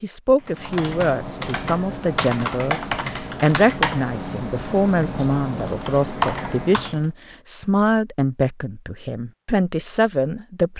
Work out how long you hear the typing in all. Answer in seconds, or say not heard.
7 s.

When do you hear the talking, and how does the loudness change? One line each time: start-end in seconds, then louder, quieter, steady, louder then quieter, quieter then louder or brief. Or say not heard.
0.0-10.7 steady.